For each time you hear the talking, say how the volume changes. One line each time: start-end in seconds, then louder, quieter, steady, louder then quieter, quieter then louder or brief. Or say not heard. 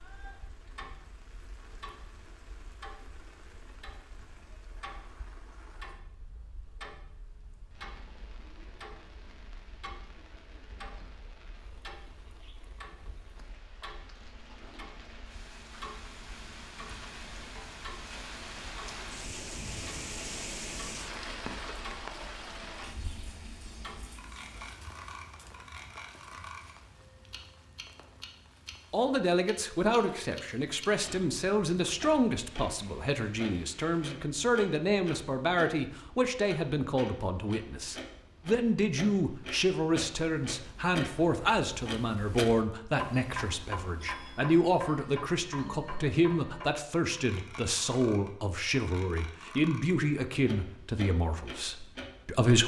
28.9-52.6 steady.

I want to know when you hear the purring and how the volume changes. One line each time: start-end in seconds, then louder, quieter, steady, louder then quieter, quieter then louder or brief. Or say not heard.
not heard.